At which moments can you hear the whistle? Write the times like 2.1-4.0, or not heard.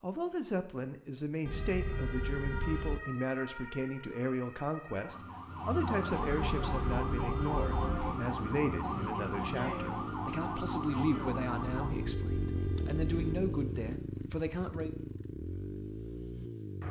not heard.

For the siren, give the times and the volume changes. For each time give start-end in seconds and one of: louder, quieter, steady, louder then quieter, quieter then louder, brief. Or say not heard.
1.5-11.9 louder.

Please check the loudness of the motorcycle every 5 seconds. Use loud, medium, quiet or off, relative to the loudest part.
off, loud, loud, loud.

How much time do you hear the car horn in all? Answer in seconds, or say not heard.
5 s.